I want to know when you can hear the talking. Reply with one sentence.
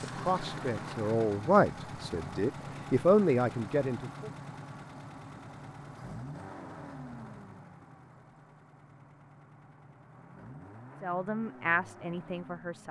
You can hear the talking from 0.0 to 4.3 s and from 11.0 to 12.8 s.